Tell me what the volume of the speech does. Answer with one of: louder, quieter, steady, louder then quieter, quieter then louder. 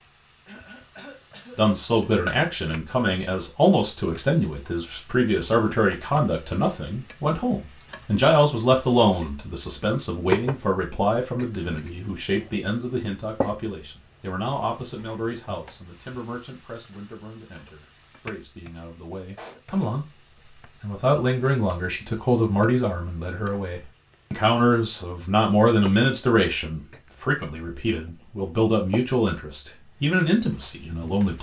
quieter then louder.